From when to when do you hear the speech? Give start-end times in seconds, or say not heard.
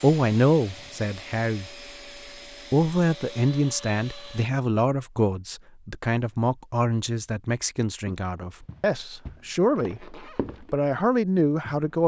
0.0-1.7, 2.7-12.0.